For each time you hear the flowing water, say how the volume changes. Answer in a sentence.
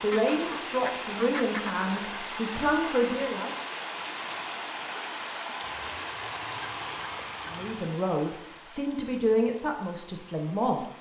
You can hear the flowing water from 0.0 to 10.9 s, getting quieter.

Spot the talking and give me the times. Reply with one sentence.
You can hear the talking from 0.0 to 3.5 s and from 7.5 to 10.8 s.